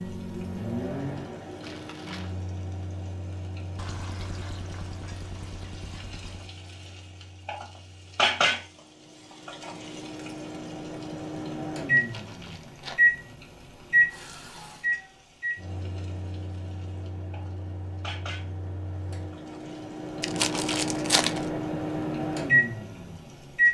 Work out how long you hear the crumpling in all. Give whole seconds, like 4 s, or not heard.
3 s.